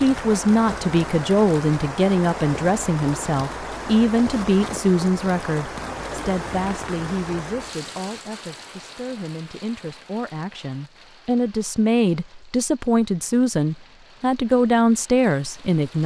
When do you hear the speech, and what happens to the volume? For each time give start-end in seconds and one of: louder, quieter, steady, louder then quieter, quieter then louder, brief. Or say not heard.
0.0-16.0 quieter then louder.